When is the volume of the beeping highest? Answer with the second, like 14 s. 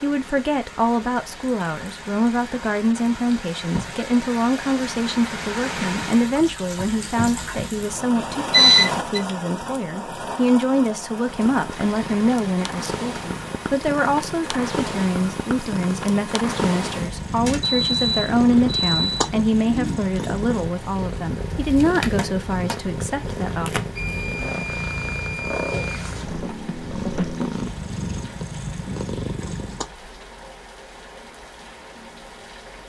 9 s.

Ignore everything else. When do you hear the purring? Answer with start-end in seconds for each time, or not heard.
11.2-29.9.